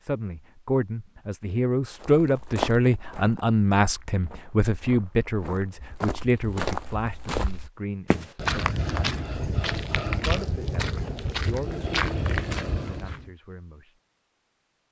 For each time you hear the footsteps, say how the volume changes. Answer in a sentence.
You can hear the footsteps from 2.0 to 13.3 s, getting quieter then louder.